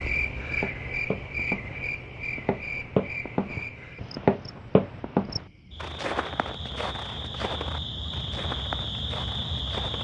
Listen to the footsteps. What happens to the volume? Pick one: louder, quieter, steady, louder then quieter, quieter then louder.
louder then quieter.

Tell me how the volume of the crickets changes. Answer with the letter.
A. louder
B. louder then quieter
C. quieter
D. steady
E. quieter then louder
E.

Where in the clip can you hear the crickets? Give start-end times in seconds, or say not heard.
0.0-10.0.